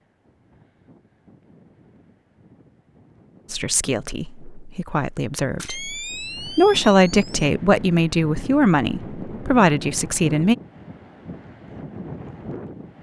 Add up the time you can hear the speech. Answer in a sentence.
The speech can be heard for 7 seconds in total.